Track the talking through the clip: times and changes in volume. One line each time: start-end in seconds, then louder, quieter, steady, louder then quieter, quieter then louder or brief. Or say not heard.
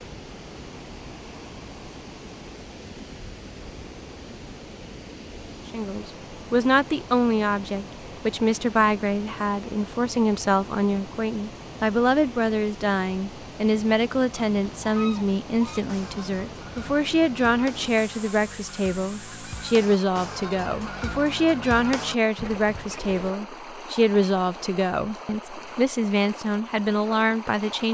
5.7-27.8 steady.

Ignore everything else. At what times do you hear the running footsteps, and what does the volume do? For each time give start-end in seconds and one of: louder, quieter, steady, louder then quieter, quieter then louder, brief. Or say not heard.
not heard.